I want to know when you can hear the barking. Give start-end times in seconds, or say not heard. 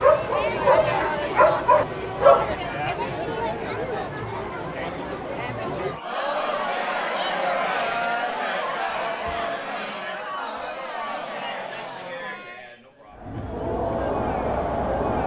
0.0-3.0.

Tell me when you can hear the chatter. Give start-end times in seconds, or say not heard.
0.0-15.2.